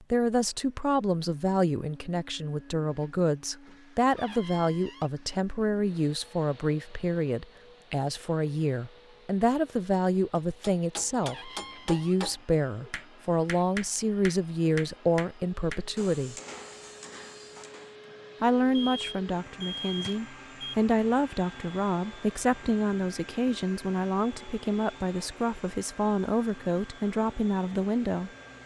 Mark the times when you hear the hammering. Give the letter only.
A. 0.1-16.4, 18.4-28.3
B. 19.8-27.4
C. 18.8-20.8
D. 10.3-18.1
D.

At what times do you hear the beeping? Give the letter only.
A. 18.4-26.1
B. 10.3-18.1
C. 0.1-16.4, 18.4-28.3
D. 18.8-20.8
D.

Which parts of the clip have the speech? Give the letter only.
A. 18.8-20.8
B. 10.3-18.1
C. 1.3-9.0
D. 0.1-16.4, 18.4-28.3
D.